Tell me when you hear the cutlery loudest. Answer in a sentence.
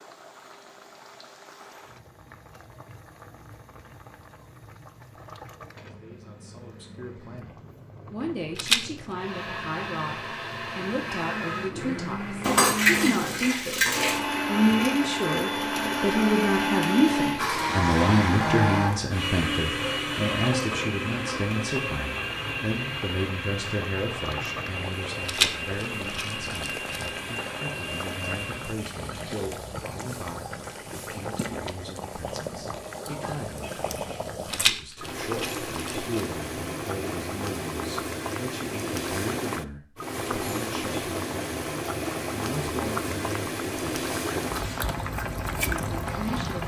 The volume of the cutlery peaks at 13 seconds.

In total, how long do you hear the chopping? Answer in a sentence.
You can't hear the chopping here.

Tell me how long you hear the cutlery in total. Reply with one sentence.
The cutlery can be heard for 2 seconds in total.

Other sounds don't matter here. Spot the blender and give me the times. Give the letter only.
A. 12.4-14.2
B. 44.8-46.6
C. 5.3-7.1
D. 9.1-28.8
D.